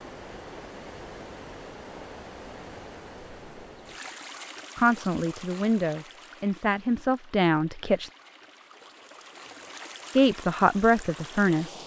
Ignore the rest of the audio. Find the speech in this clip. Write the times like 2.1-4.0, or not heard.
4.8-8.1, 10.2-11.8.